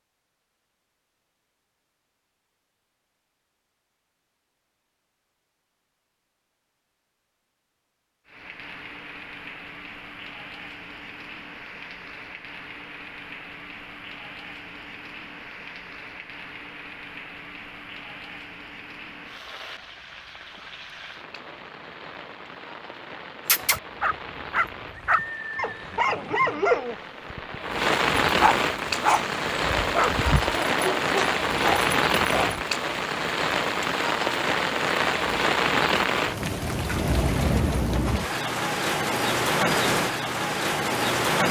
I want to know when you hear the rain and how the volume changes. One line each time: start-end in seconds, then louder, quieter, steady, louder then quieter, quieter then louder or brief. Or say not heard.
8.2-41.4 louder.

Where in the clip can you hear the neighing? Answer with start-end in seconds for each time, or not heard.
24.9-26.6.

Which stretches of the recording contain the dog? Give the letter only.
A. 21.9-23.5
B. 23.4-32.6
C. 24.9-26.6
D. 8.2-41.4
B.